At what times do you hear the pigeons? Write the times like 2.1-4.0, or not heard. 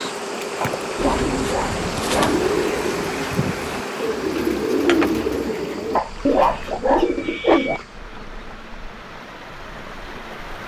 0.9-7.8.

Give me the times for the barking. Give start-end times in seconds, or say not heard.
0.6-2.4, 6.0-7.6.